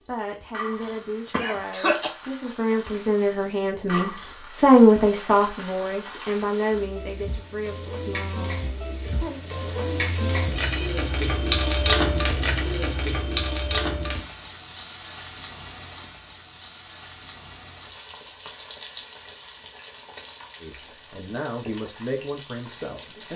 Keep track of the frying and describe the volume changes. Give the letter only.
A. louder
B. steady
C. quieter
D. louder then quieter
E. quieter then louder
D.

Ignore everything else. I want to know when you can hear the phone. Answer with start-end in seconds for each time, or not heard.
9.1-10.9.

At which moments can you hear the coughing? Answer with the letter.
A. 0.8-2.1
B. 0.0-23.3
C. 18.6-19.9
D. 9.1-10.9
A.